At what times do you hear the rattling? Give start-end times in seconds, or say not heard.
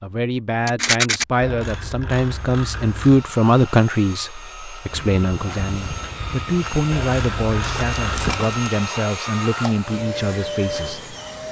0.7-1.2, 7.6-8.7.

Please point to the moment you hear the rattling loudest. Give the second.
1 s.